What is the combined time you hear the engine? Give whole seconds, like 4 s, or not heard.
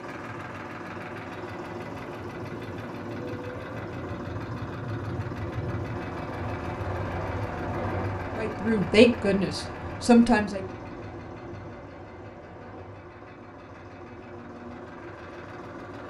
16 s.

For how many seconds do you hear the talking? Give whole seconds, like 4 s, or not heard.
2 s.